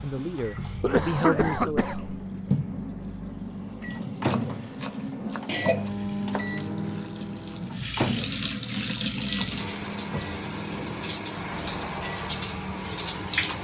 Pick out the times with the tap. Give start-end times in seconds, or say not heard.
0.0-13.5.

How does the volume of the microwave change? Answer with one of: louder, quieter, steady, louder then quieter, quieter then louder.
louder then quieter.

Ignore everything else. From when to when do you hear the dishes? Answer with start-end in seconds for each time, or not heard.
not heard.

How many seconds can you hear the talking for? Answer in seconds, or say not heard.
2 s.